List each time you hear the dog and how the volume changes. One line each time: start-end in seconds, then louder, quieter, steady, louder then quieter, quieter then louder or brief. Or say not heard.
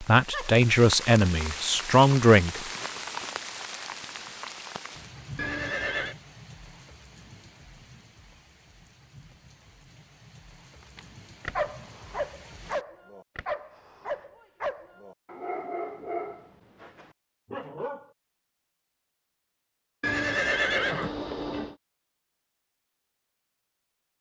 10.9-18.1 quieter.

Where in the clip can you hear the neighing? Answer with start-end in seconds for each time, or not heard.
5.3-6.2, 20.0-21.8.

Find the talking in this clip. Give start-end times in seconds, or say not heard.
0.0-2.6.